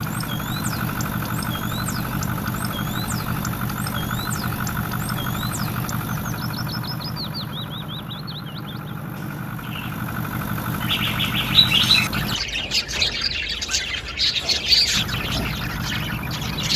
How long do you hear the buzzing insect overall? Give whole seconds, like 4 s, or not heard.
not heard.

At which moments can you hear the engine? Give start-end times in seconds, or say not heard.
0.0-12.4, 14.9-16.7.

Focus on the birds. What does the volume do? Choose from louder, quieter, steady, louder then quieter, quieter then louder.
louder.